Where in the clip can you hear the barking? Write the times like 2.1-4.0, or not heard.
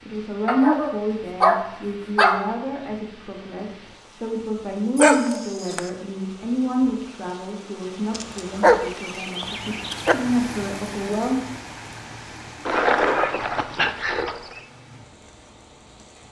0.5-2.5, 5.0-5.8, 8.2-10.2, 12.7-14.6.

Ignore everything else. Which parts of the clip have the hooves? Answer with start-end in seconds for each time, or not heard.
not heard.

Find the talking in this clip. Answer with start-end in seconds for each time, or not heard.
0.1-11.4.